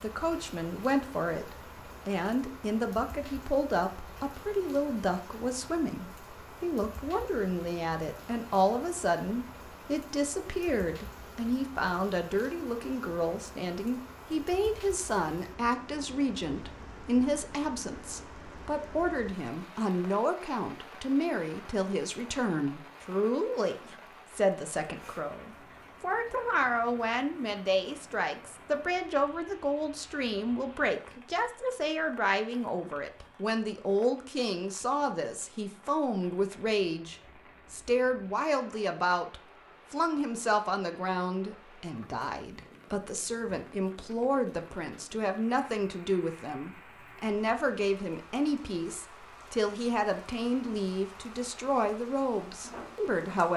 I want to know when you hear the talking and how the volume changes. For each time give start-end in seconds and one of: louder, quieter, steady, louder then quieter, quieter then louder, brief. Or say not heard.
0.0-53.5 steady.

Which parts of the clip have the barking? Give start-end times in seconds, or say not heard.
not heard.